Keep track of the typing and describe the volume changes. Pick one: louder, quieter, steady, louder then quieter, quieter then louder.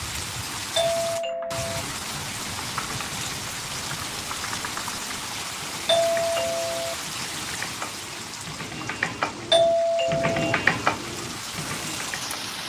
louder.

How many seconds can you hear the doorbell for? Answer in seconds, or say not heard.
3 s.